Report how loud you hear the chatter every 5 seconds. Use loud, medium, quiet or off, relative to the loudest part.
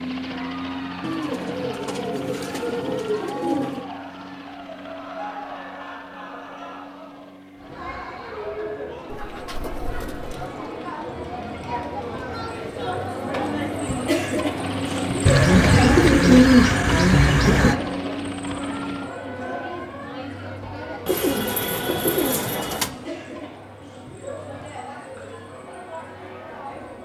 medium, medium, loud, loud, medium, medium.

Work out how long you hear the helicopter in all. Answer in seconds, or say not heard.
13 s.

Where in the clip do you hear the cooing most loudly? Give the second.
16 s.